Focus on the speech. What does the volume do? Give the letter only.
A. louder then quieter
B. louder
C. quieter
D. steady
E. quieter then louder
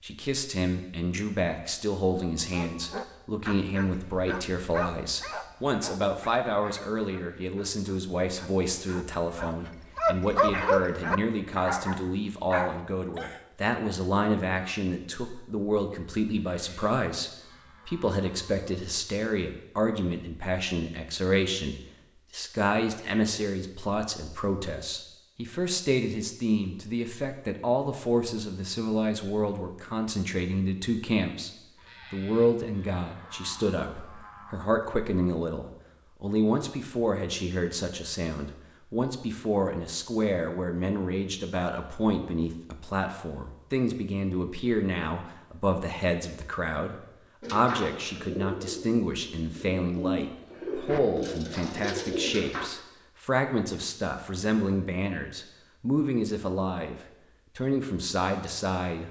D.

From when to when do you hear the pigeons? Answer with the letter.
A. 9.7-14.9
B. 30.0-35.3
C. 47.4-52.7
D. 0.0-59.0
C.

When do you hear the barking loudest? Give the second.
11 s.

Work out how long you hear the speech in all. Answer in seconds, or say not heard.
59 s.